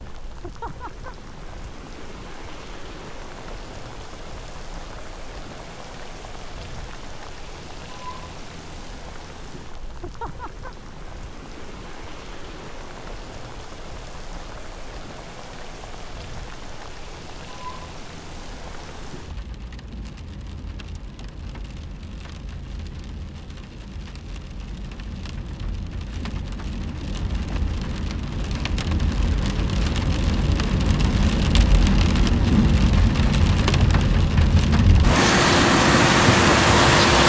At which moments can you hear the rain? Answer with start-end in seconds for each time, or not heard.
0.0-37.2.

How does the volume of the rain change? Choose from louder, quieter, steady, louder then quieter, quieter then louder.
louder.